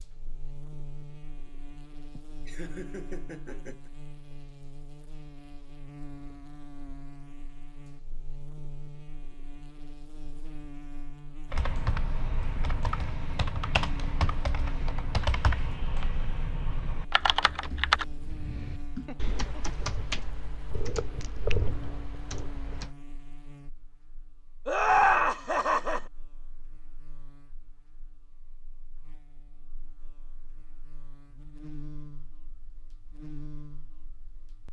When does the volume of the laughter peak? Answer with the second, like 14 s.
25 s.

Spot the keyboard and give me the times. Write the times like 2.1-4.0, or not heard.
11.5-22.9.